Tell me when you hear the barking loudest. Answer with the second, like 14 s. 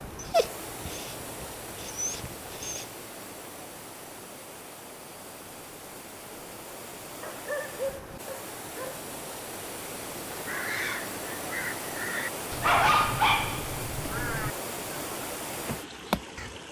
13 s.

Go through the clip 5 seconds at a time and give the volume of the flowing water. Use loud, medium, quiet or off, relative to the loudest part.
medium, medium, loud, loud.